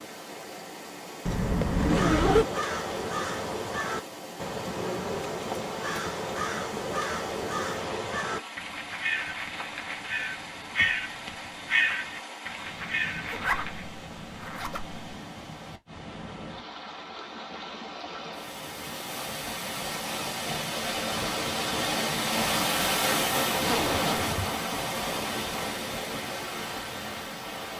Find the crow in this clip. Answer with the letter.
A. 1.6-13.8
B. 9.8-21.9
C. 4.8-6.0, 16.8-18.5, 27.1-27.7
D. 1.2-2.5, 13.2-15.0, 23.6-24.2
A.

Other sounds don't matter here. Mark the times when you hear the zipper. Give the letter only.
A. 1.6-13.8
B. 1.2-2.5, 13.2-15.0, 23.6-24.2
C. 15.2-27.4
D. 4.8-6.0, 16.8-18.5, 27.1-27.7
B.